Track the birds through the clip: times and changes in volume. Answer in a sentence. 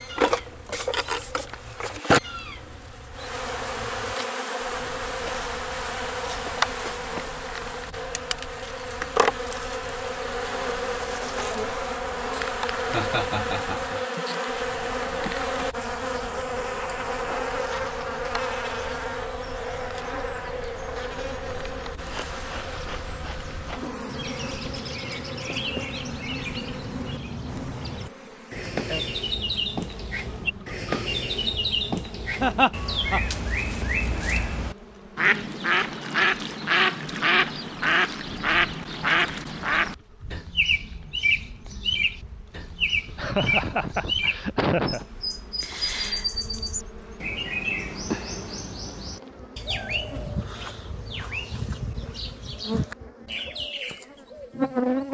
The birds can be heard from 0.0 to 55.0 s, getting louder then quieter.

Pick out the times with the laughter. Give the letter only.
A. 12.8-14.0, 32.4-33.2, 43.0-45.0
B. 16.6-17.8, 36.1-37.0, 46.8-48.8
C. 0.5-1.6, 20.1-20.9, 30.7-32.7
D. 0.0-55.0
A.